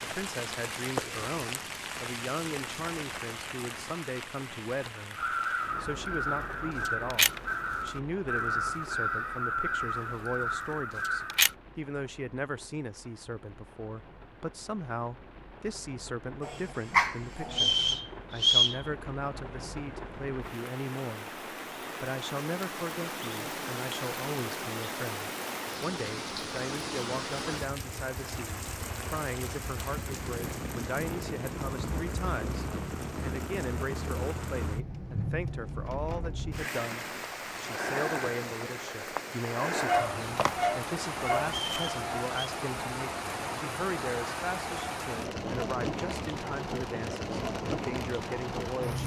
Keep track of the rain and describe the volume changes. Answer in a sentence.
The loudness of the rain goes down, then up.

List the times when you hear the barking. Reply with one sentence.
The barking can be heard from 16.4 to 17.9 s and from 39.9 to 41.5 s.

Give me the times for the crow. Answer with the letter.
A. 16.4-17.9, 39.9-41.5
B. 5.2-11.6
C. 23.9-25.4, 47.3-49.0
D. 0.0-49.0
B.